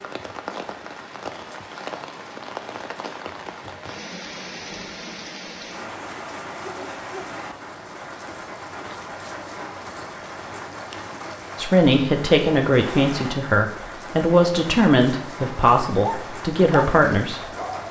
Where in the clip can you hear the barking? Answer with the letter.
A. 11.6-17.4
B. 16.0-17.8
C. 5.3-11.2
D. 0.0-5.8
B.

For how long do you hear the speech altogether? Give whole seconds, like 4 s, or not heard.
6 s.